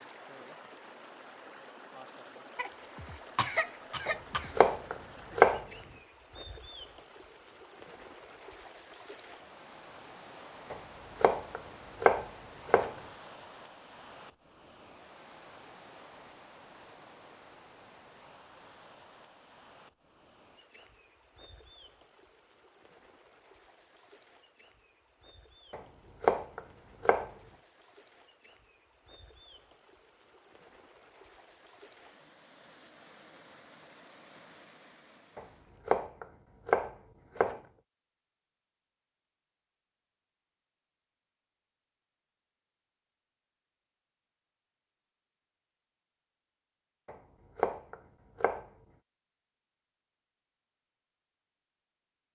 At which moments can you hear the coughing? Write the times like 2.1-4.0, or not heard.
2.5-4.5.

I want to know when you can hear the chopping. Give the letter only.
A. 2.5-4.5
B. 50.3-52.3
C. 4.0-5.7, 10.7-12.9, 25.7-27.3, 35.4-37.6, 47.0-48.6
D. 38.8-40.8
C.